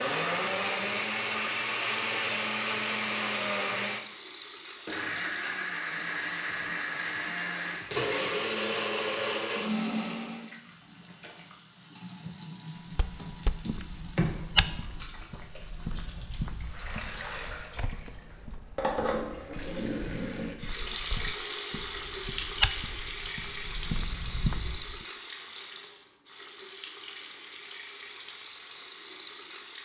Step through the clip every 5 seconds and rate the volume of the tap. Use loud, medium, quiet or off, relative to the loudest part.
medium, medium, medium, loud, loud, medium.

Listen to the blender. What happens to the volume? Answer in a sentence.
The loudness of the blender stays about the same.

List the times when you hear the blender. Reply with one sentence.
The blender can be heard from 0.0 to 10.6 s.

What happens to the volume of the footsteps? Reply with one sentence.
The volume of the footsteps goes down, then up.